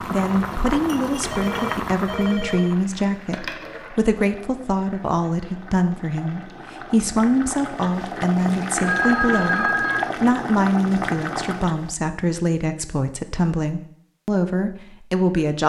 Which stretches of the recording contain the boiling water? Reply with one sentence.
You can hear the boiling water from 0.0 to 11.9 s.